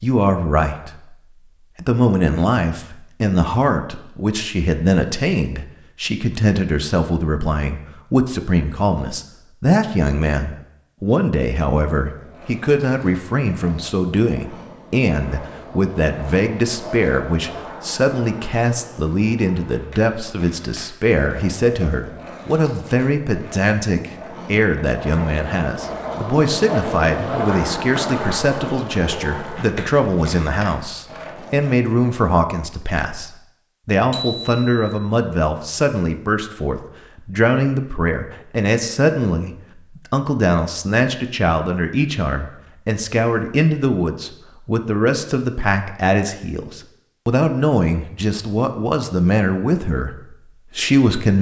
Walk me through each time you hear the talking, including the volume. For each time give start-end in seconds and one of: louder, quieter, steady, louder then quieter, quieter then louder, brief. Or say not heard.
0.0-0.9 brief
1.8-50.1 steady
50.8-51.3 brief.